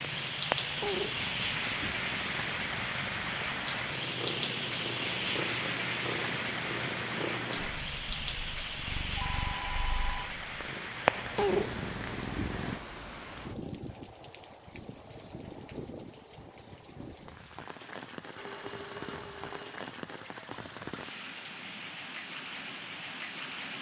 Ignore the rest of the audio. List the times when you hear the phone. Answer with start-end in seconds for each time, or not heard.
9.2-10.3, 18.4-19.9.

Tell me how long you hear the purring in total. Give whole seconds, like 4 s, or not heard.
13 s.